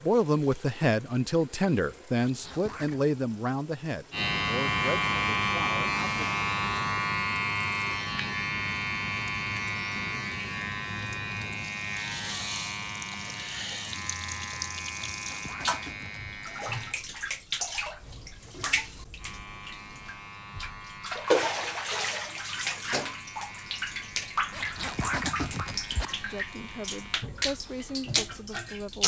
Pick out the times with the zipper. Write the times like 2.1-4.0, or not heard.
2.1-3.0, 15.1-16.3, 24.5-26.1.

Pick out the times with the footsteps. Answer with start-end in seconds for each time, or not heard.
not heard.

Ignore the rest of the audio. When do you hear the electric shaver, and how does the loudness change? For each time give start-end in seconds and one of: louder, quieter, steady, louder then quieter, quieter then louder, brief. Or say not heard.
4.1-17.0 quieter
19.1-27.2 steady.